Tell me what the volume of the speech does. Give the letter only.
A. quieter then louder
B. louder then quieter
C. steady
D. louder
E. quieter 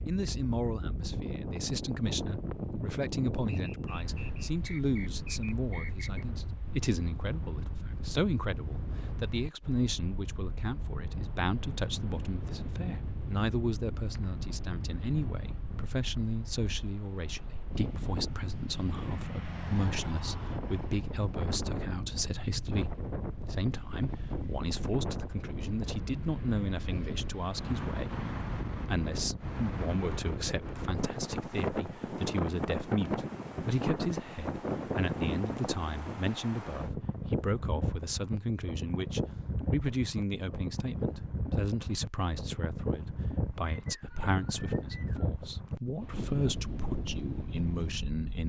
C.